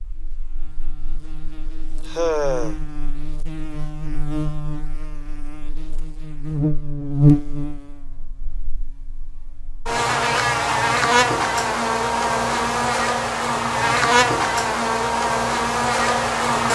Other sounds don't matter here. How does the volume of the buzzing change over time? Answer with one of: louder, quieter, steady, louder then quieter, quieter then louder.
louder.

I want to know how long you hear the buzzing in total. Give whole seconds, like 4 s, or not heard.
17 s.